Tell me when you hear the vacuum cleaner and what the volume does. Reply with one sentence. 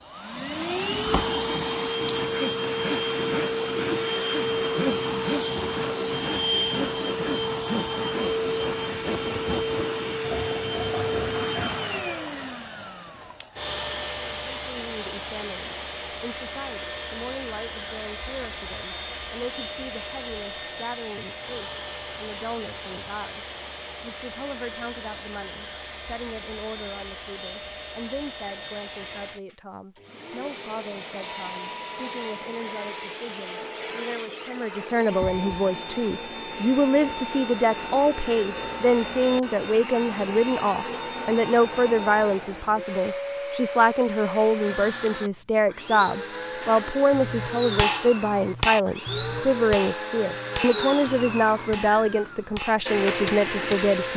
The vacuum cleaner can be heard from 0.0 to 54.1 s, getting quieter then louder.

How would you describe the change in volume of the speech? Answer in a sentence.
The loudness of the speech goes up.